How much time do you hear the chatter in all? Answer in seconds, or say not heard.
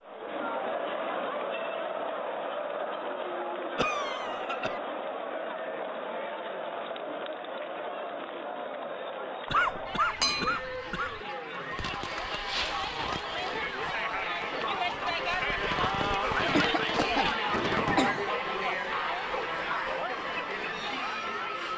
22 s.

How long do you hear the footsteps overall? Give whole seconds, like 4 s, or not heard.
not heard.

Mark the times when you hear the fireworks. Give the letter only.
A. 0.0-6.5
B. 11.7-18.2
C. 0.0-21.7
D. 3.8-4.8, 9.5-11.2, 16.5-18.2
B.